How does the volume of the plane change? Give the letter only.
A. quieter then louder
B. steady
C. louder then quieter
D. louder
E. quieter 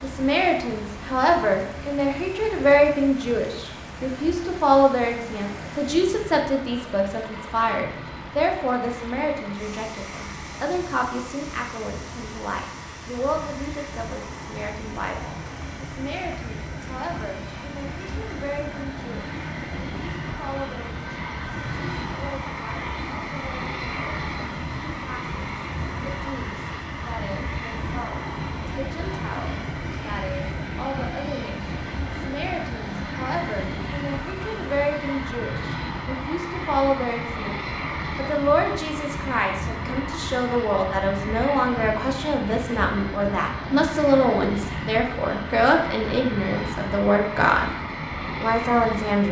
D.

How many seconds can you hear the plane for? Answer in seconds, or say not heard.
49 s.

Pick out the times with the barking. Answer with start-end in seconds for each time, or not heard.
not heard.